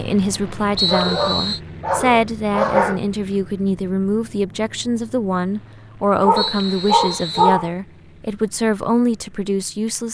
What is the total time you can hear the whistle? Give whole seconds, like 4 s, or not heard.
2 s.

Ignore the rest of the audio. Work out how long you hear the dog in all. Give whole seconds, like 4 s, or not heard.
4 s.